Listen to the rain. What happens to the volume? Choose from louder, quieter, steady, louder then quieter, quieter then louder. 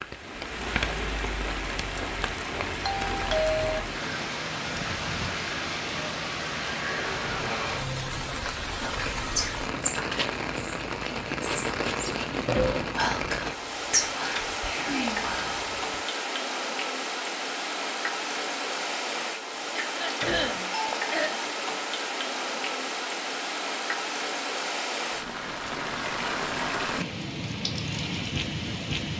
steady.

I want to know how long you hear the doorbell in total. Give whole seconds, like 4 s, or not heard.
2 s.